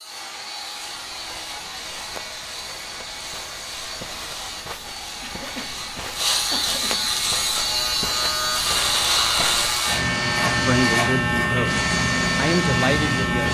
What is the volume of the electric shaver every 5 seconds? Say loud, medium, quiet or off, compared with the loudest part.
quiet, loud, loud.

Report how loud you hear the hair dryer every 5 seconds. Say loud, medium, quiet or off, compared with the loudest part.
medium, medium, loud.